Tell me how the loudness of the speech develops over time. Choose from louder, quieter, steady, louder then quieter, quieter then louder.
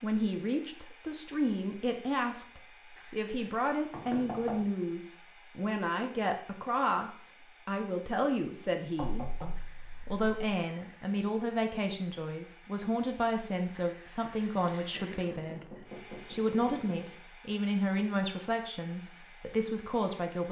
steady.